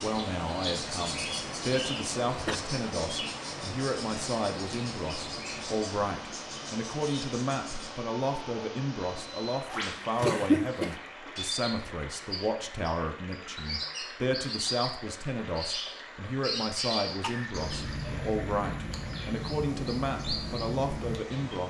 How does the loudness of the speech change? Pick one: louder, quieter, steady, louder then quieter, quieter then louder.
steady.